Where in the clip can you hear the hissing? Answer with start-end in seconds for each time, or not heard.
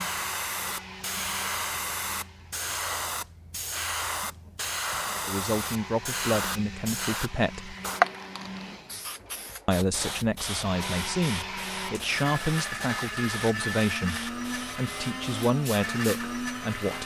0.0-17.0.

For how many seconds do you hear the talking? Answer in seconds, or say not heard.
10 s.